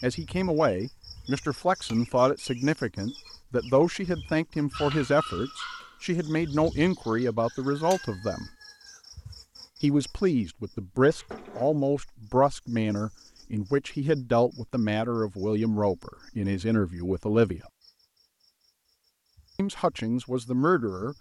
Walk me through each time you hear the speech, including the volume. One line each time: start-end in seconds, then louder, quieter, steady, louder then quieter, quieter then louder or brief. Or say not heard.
0.0-8.5 steady
9.8-17.6 steady
19.6-21.1 brief.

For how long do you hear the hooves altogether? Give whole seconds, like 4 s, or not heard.
not heard.